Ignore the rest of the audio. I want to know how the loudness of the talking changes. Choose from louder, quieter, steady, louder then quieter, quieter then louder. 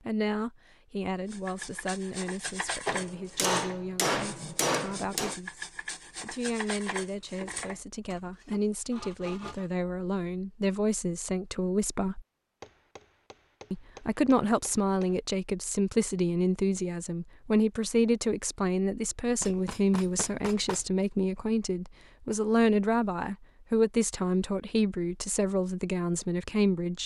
louder.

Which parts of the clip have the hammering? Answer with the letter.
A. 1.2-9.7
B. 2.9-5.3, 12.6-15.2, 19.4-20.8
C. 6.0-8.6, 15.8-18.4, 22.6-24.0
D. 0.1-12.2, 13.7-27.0
B.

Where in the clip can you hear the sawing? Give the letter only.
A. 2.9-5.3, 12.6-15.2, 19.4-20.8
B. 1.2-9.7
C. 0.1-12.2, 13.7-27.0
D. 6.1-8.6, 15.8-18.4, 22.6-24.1
B.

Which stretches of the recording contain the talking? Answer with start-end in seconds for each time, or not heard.
0.1-12.2, 13.7-27.0.